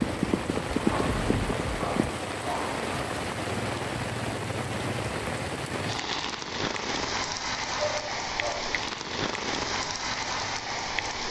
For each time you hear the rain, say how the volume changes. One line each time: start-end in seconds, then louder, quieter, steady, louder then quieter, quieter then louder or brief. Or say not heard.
0.0-11.2 steady.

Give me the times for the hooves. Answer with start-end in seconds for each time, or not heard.
0.0-2.1.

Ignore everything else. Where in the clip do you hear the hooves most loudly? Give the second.
1 s.